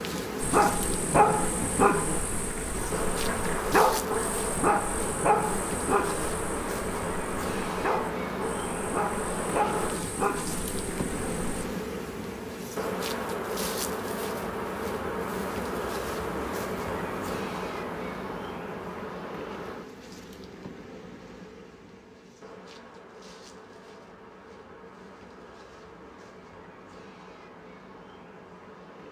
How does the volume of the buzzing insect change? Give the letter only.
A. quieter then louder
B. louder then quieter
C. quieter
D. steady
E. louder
C.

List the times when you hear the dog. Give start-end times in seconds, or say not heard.
0.4-11.7.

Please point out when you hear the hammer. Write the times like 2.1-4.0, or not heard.
not heard.